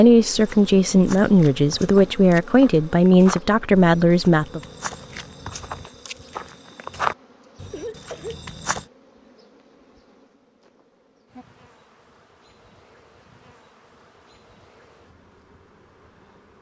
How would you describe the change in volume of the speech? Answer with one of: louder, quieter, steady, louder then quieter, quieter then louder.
steady.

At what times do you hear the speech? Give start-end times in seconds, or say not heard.
0.0-4.6.